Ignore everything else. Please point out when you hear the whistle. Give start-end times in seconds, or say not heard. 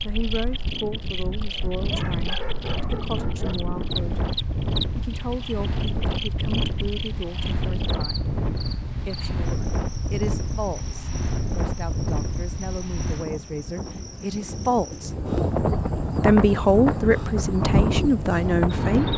not heard.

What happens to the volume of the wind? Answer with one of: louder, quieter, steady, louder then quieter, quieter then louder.
louder.